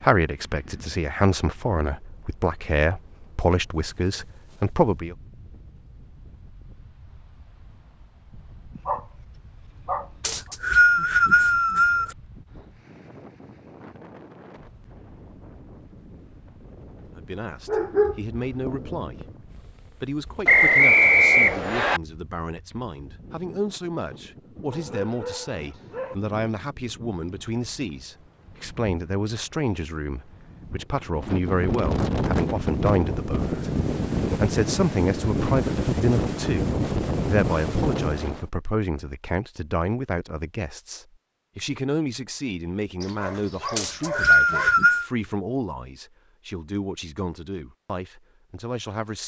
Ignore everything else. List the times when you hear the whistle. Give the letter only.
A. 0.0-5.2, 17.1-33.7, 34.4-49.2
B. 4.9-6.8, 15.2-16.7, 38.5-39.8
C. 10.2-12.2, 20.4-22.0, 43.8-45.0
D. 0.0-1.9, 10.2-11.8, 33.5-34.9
C.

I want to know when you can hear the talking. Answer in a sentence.
You can hear the talking from 0.0 to 5.2 s, from 17.1 to 33.7 s and from 34.4 to 49.2 s.